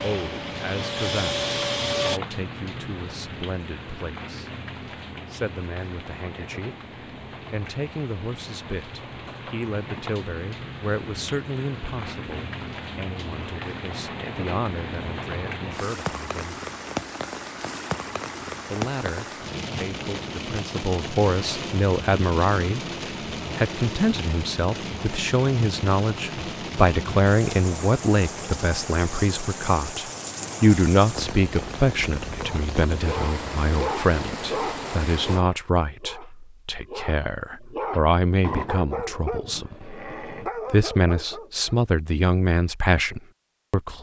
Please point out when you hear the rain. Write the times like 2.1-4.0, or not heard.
0.0-35.5.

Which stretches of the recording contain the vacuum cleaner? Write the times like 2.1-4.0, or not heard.
0.0-2.2.